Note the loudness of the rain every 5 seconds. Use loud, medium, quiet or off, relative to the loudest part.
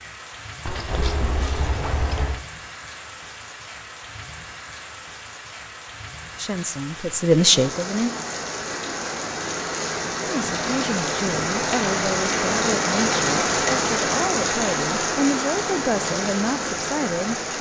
quiet, medium, loud, loud.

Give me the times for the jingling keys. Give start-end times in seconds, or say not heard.
0.7-2.5.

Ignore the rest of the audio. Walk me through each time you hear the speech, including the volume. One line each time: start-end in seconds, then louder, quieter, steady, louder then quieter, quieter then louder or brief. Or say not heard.
6.3-8.1 brief
10.2-17.4 steady.